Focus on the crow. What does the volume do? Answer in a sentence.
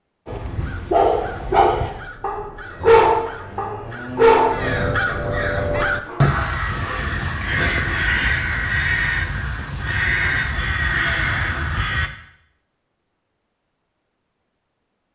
The loudness of the crow goes up.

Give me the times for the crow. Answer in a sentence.
You can hear the crow from 0.5 to 12.1 s.